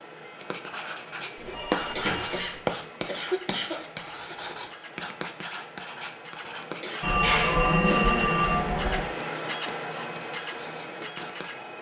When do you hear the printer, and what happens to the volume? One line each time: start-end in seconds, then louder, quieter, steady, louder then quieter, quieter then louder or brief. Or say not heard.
0.0-11.7 louder.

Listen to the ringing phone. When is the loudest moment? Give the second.
8 s.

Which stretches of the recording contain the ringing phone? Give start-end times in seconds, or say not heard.
1.4-2.5, 7.0-9.1.